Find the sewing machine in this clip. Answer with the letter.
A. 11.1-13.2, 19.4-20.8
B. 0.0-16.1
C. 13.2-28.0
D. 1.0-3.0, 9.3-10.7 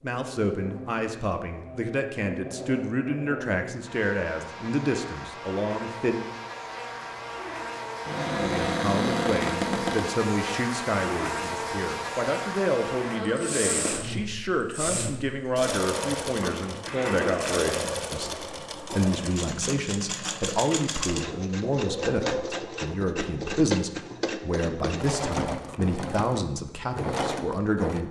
C.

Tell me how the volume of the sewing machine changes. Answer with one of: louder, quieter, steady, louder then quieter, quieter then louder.
steady.